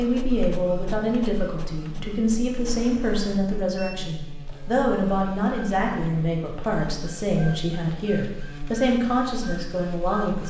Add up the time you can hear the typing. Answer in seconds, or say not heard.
not heard.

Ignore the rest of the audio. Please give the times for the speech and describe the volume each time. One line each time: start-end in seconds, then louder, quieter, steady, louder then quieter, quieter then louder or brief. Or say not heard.
0.0-10.4 steady.